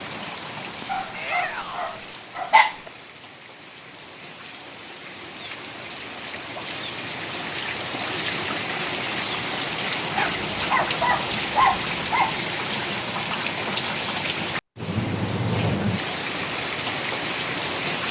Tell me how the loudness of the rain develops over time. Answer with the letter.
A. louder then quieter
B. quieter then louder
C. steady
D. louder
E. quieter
D.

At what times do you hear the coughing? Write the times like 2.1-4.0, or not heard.
not heard.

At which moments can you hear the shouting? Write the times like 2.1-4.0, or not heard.
1.1-1.9.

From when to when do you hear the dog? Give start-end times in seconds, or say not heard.
0.9-2.8, 10.2-12.4.